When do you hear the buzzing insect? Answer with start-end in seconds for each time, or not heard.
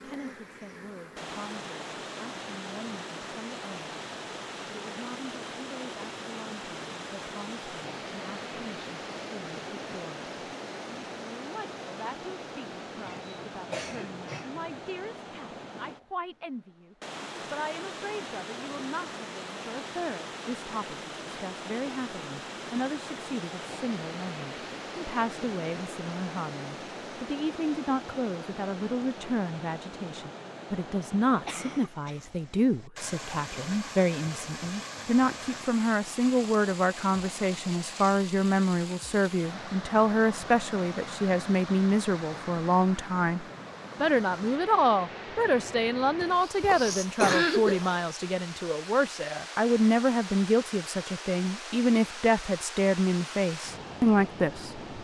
0.0-1.4.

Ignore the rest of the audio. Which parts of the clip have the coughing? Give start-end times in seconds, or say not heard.
13.1-14.8, 31.4-32.2, 46.2-48.0.